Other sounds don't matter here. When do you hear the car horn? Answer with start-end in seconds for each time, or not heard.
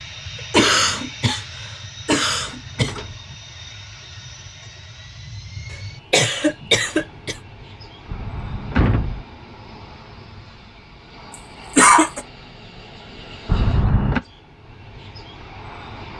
not heard.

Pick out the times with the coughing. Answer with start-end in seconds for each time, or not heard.
0.5-1.4, 2.0-3.0, 6.1-7.3, 11.8-12.2.